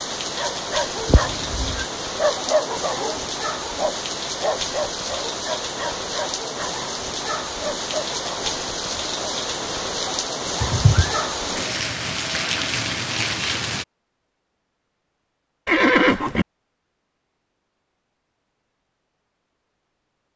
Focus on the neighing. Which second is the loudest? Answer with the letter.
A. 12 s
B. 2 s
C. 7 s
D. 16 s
D.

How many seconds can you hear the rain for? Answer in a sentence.
The rain can be heard for 14 seconds in total.